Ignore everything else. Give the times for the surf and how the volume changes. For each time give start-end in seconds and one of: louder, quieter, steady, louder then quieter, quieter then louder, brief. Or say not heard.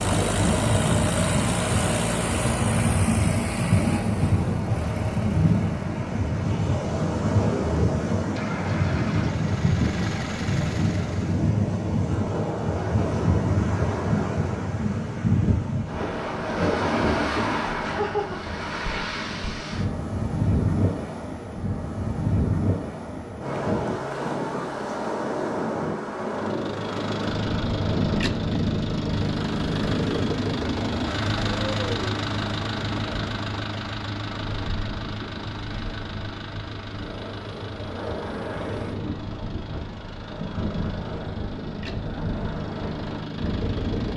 0.0-44.1 quieter.